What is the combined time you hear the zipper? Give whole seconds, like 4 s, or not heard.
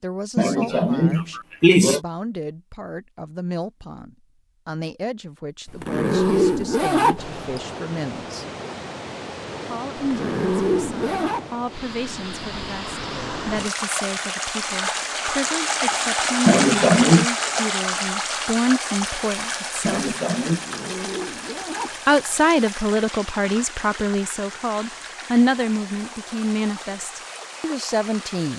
5 s.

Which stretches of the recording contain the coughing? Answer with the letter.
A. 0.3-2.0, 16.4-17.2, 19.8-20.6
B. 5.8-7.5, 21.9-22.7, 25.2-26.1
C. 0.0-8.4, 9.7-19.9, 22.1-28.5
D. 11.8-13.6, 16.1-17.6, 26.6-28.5
A.